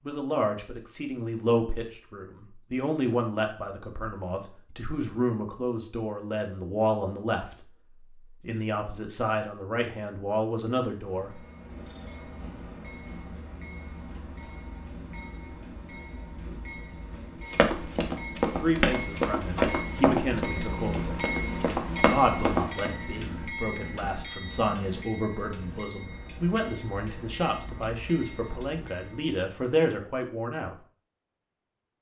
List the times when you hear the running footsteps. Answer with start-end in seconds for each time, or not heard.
17.5-22.9.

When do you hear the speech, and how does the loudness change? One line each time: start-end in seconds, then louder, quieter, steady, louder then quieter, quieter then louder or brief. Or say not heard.
0.0-11.4 steady
18.6-21.1 brief
22.1-30.8 louder.